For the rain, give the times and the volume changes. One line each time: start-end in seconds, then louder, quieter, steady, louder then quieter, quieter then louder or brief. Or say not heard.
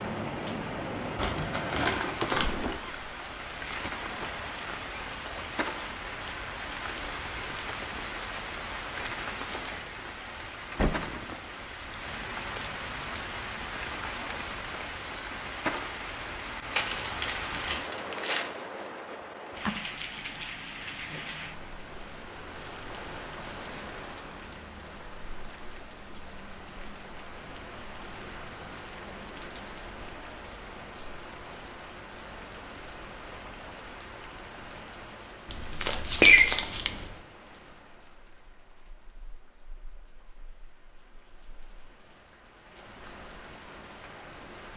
0.0-44.7 quieter.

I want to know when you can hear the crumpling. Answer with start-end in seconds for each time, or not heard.
1.1-2.5, 16.7-18.4, 35.5-37.1.